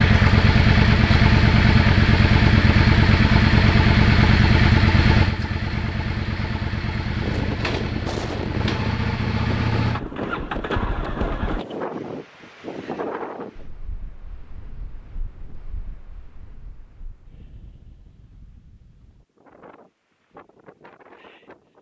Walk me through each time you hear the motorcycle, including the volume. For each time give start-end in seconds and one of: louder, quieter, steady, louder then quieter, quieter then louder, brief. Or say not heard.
0.0-11.6 quieter.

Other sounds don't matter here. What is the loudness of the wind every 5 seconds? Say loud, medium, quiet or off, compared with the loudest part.
off, loud, loud, quiet, quiet.